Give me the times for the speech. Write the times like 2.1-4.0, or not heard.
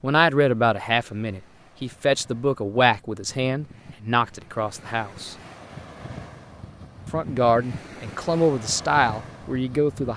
0.0-5.3, 7.1-10.1.